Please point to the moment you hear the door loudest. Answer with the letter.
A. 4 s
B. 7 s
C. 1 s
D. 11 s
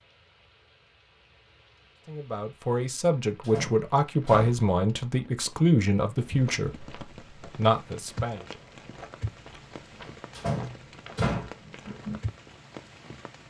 D.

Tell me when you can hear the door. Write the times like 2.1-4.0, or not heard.
3.4-4.6, 10.3-11.5.